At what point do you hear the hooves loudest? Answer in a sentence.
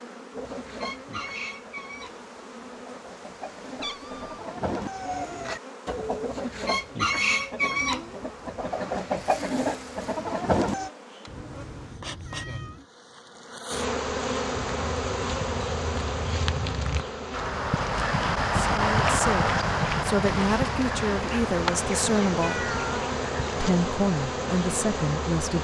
The volume of the hooves peaks at 19 seconds.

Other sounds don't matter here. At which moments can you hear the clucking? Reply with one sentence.
You can hear the clucking from 0.3 to 10.9 s.